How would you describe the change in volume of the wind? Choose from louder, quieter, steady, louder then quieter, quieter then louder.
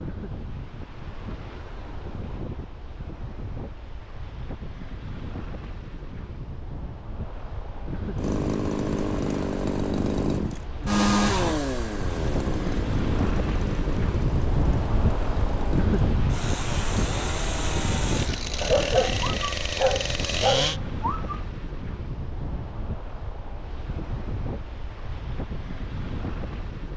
louder then quieter.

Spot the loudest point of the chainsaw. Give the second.
11 s.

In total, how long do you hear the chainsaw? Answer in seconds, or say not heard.
13 s.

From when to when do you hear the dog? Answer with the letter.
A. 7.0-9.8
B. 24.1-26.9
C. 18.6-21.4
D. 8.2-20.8
C.